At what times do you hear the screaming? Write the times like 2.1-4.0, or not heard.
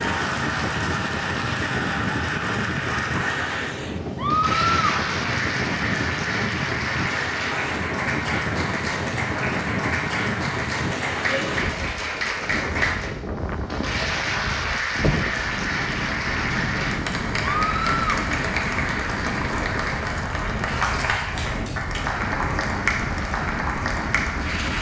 4.2-5.0, 17.4-18.2.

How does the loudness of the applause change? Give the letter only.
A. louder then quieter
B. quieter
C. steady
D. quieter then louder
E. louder
C.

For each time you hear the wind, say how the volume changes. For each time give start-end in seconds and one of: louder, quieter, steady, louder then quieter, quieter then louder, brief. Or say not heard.
0.0-24.7 steady.